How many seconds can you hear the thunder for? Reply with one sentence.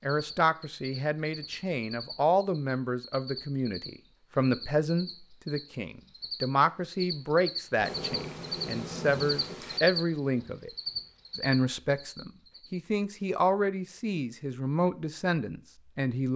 The thunder can be heard for 2 seconds in total.